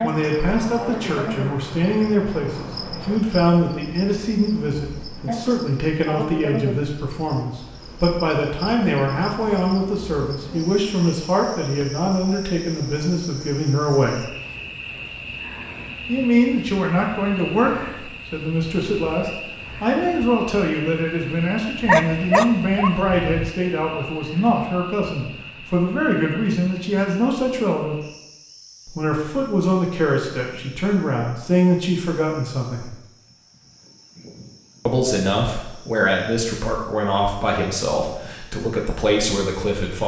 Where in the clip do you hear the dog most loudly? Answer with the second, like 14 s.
22 s.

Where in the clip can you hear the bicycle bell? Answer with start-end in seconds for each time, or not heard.
not heard.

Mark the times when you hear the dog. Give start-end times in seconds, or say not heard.
21.9-23.5.